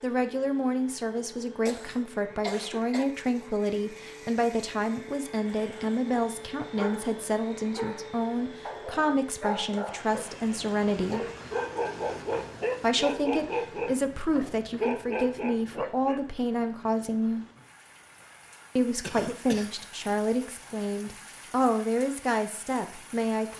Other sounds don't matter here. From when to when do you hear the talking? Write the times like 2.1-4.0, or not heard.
0.0-11.2, 12.8-17.4, 18.8-23.5.